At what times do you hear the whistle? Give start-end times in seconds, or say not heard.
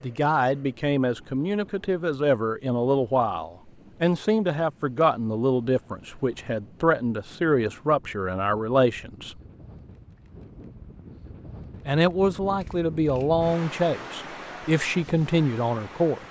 not heard.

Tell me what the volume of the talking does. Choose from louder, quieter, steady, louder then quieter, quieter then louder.
steady.